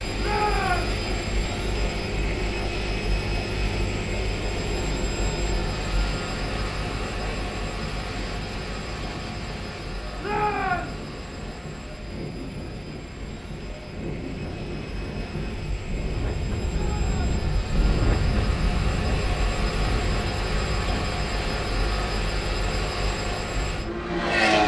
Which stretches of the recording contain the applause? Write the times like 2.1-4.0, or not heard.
not heard.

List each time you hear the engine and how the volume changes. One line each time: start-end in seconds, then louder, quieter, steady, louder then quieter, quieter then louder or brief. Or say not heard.
0.0-24.6 quieter then louder.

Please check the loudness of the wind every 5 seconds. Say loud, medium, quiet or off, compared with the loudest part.
medium, medium, medium, loud, medium.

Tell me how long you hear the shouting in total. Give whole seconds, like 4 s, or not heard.
2 s.